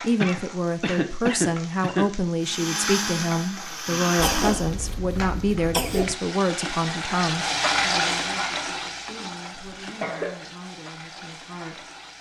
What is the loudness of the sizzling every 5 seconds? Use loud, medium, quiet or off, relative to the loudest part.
quiet, loud, quiet.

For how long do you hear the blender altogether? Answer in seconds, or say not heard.
2 s.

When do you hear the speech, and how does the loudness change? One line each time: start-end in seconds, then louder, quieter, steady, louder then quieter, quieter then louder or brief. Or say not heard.
0.0-11.9 quieter.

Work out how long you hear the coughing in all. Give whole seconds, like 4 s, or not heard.
5 s.